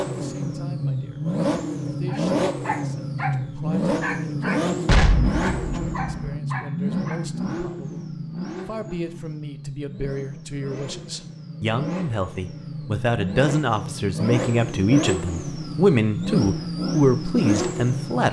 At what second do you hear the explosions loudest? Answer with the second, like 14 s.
5 s.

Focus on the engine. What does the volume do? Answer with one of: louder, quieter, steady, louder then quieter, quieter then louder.
quieter then louder.